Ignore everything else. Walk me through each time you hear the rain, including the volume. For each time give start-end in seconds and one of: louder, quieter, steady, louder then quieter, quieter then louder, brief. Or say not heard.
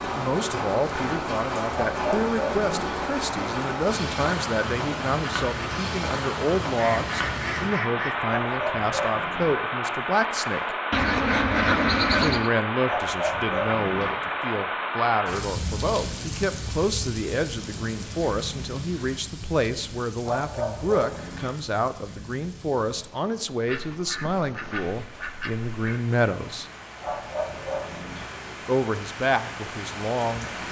0.0-30.6 quieter.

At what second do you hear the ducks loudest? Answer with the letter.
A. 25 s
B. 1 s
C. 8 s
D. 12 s
D.